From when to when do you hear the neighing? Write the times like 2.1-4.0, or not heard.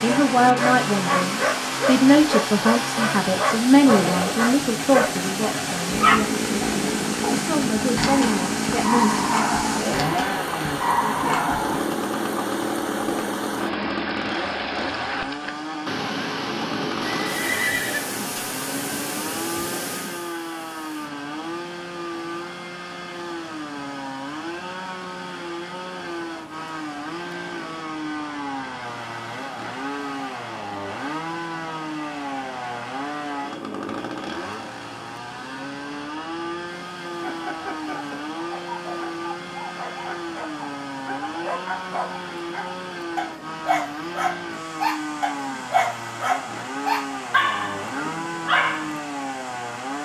17.1-18.5.